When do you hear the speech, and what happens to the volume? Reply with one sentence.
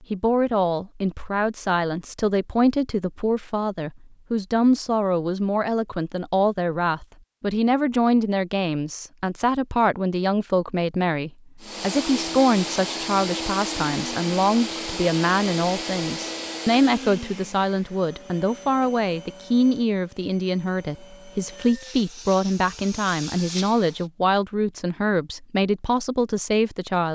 You can hear the speech from 0.1 to 27.1 s, at a steady volume.